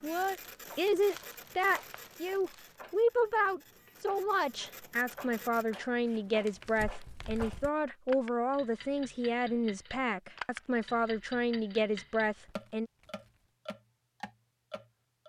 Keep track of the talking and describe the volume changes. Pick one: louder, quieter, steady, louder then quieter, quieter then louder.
steady.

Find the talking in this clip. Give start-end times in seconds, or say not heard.
0.0-12.9.